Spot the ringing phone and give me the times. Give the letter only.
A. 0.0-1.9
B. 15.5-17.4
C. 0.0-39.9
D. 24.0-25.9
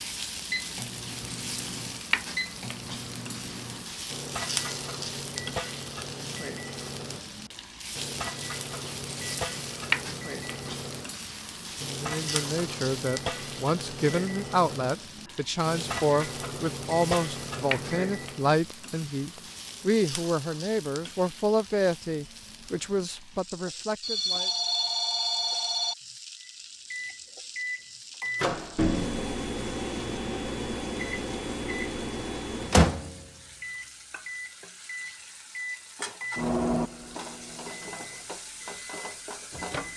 D.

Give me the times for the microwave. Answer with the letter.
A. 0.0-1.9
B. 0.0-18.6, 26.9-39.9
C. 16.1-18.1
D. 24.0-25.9
B.